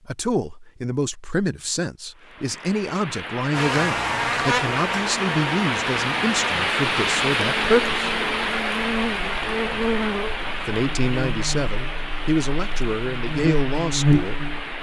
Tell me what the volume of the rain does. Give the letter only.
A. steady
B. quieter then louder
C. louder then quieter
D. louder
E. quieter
C.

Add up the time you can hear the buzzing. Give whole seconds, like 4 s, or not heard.
11 s.